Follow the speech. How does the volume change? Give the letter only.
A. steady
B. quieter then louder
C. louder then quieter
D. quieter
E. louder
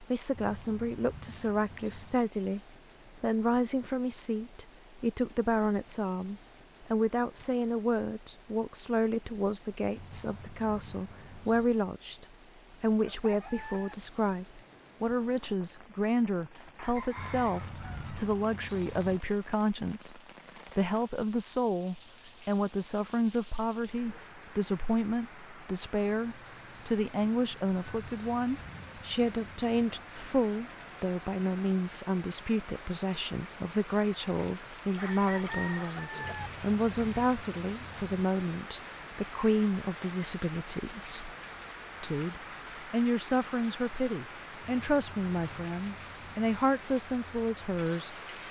A.